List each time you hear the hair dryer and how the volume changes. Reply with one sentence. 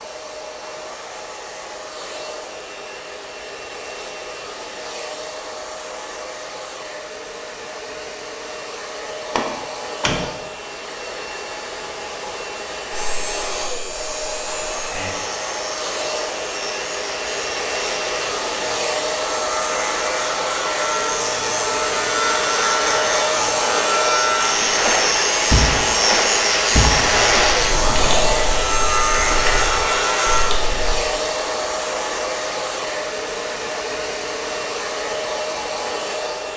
The hair dryer can be heard from 0.0 to 36.5 s, getting louder.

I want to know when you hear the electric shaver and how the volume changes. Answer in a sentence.
The electric shaver can be heard from 12.9 to 30.5 s, getting louder.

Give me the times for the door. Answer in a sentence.
The door can be heard from 9.3 to 10.2 s and from 26.9 to 28.4 s.